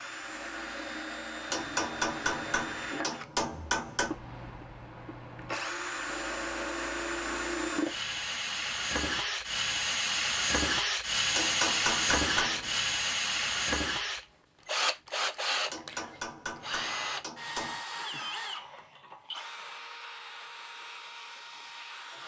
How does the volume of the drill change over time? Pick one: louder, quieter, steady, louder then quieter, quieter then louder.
louder then quieter.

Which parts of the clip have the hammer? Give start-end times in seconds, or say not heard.
1.5-4.2, 11.3-12.8, 15.7-17.8.